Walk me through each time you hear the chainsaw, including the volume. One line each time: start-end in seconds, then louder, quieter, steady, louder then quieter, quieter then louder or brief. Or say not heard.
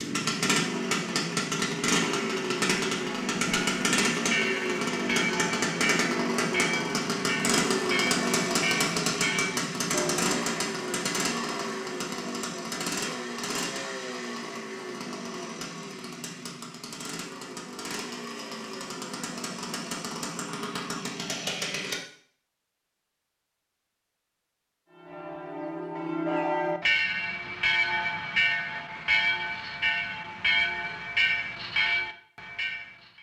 0.0-21.9 quieter.